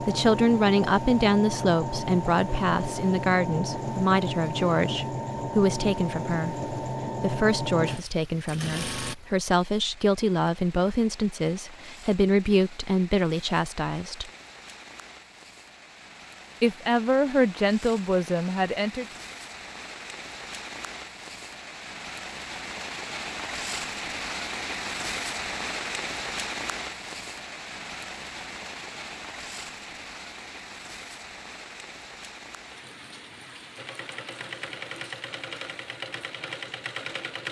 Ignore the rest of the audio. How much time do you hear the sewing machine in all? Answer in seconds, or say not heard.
13 s.